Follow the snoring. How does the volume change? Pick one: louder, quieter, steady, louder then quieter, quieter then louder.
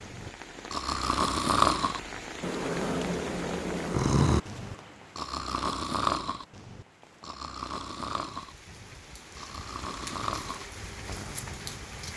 quieter.